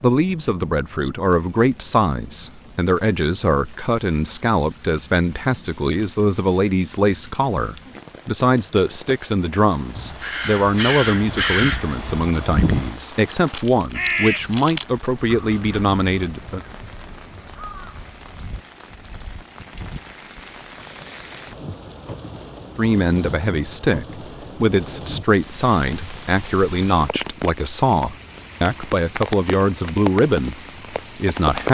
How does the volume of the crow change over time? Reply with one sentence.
The volume of the crow goes down.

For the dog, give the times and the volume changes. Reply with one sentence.
The dog can't be heard in this clip.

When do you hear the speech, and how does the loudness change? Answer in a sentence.
You can hear the speech from 0.0 to 16.6 s, at a steady volume; and from 22.8 to 31.6 s, at a steady volume.